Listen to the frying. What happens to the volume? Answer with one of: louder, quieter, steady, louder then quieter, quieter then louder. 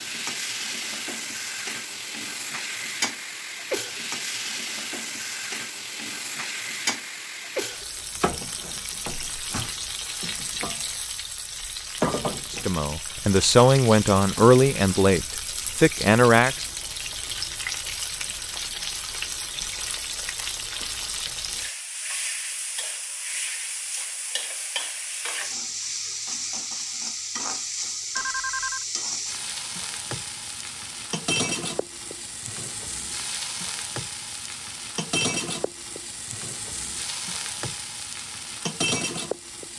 steady.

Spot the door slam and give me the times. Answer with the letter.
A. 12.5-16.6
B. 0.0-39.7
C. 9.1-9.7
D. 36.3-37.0
C.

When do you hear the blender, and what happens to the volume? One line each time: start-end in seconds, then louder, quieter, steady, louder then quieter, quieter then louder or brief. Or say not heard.
not heard.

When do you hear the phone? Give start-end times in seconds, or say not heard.
28.1-28.9.